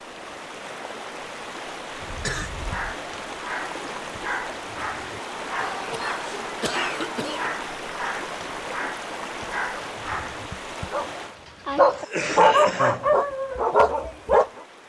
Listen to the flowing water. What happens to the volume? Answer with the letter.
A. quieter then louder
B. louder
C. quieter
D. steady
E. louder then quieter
C.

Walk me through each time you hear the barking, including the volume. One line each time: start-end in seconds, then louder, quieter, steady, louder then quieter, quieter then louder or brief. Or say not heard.
2.6-14.5 louder.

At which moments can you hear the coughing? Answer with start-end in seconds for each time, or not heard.
2.0-3.0, 5.5-7.5, 11.8-13.1.